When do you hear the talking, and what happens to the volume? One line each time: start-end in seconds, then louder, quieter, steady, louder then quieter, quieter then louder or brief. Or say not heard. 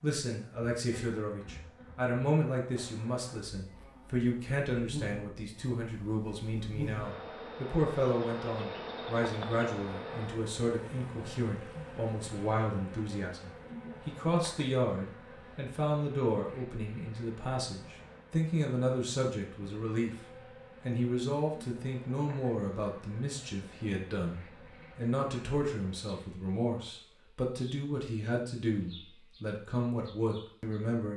0.0-20.2 steady
20.9-31.1 steady.